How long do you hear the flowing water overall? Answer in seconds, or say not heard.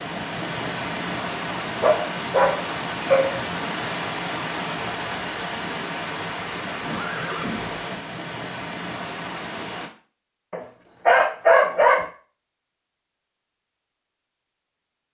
10 s.